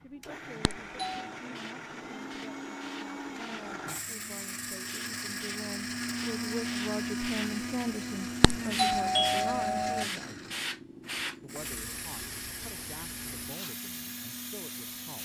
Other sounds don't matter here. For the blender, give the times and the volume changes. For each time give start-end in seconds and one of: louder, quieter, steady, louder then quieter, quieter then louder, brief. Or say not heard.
0.0-15.1 louder then quieter.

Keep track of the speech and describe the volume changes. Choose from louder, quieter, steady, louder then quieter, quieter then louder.
louder then quieter.